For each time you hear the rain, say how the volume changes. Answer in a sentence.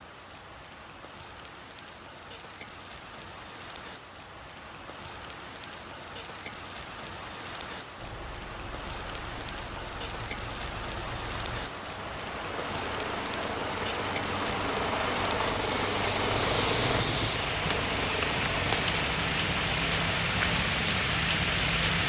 You can hear the rain from 0.0 to 22.0 s, getting louder.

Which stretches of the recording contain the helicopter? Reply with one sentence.
The helicopter can be heard from 8.0 to 22.0 s.